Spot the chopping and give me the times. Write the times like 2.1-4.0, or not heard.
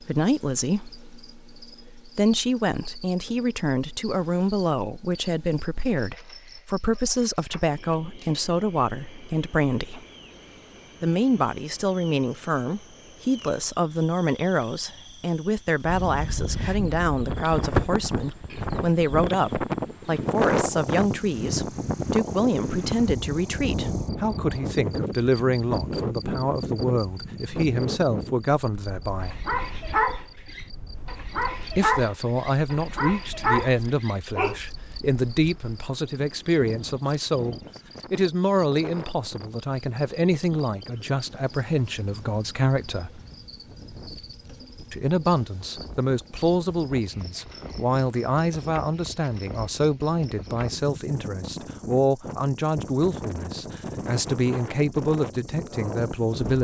not heard.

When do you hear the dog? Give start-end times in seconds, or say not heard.
29.2-34.6.